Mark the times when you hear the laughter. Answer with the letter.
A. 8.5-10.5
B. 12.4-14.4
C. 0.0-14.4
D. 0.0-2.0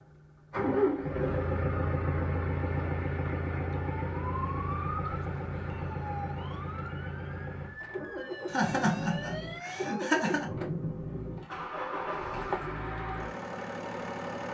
A.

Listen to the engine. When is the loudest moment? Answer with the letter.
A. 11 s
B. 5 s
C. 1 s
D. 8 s
C.